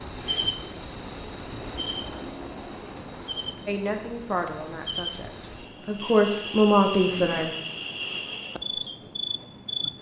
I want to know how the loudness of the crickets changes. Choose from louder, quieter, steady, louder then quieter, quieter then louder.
quieter then louder.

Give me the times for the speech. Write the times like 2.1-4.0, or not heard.
3.6-7.5.